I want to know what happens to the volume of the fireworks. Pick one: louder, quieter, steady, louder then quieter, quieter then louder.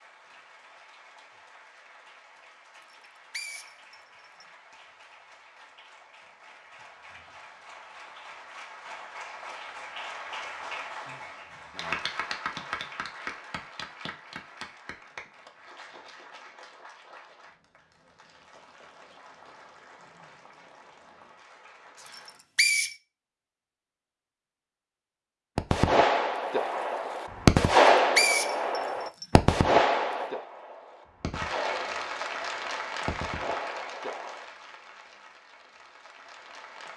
quieter.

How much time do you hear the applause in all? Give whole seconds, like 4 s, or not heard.
28 s.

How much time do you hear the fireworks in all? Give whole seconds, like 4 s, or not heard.
9 s.